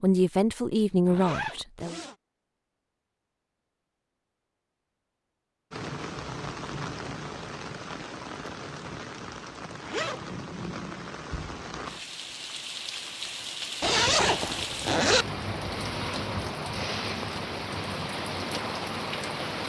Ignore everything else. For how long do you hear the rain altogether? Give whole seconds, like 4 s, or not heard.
14 s.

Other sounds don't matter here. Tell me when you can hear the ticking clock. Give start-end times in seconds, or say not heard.
not heard.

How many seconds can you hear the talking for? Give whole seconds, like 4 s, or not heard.
2 s.